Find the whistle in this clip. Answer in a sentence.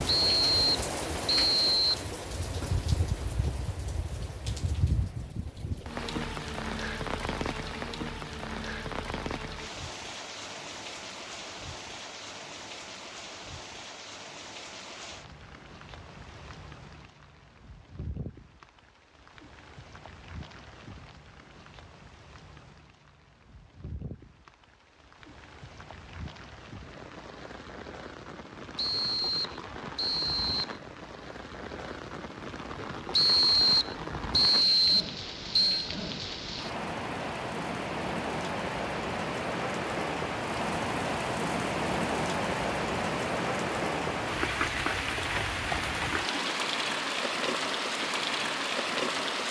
The whistle can be heard from 0.3 to 2.0 s, from 28.8 to 30.8 s and from 33.1 to 35.9 s.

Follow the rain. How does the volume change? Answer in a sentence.
The loudness of the rain goes down, then up.